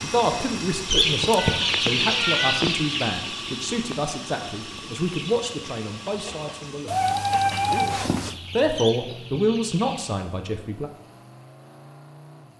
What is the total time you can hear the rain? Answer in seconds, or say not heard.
not heard.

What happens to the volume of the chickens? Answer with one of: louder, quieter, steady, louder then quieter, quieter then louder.
quieter.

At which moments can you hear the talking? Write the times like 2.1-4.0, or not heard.
0.0-10.9.